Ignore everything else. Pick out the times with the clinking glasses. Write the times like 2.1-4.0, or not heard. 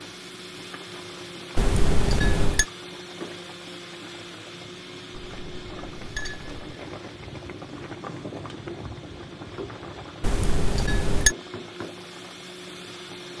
1.6-2.6, 5.1-6.7, 10.2-11.3.